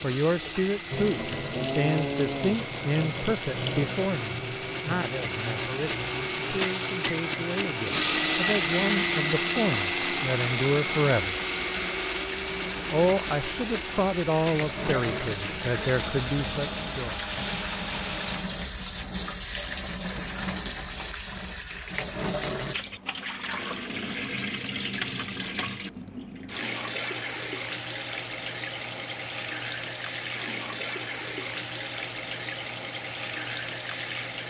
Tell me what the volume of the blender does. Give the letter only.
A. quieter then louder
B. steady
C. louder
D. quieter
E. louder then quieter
E.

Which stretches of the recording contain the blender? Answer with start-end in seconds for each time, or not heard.
0.0-18.4.